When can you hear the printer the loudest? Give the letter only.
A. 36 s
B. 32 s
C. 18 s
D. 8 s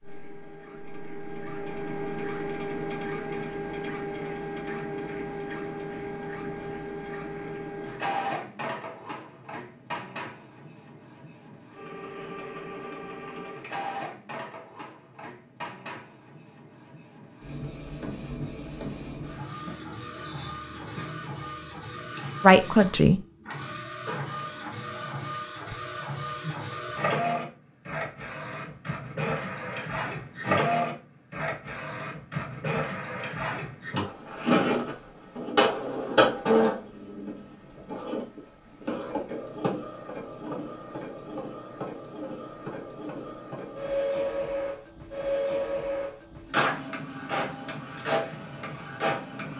A.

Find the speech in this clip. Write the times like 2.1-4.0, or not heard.
22.4-23.2.